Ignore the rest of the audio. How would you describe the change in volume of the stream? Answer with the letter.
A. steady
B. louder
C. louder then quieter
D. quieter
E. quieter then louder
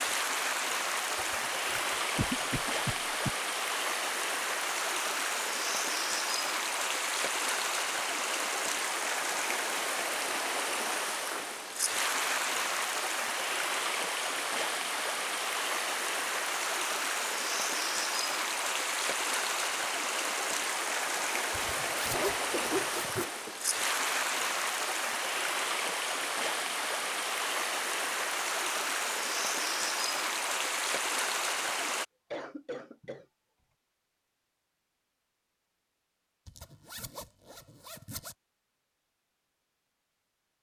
A.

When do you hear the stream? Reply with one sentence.
You can hear the stream from 0.0 to 32.0 s.